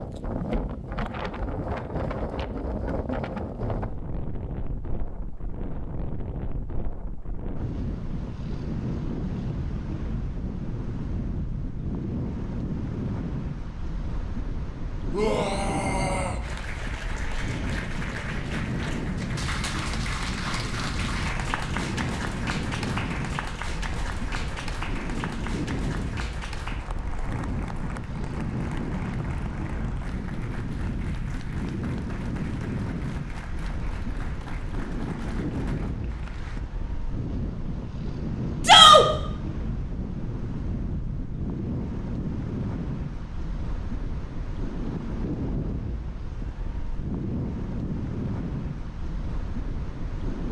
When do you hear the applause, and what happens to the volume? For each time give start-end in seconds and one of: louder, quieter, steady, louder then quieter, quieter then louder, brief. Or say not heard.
16.4-36.6 quieter.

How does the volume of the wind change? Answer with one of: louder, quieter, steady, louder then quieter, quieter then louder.
steady.